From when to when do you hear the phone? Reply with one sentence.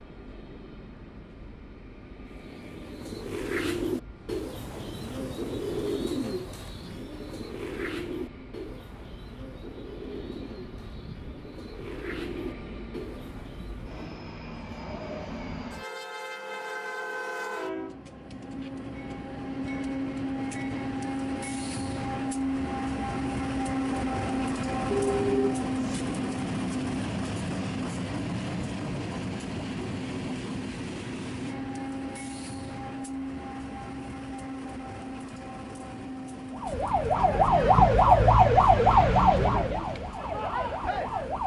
The phone can be heard from 24.9 to 26.0 s.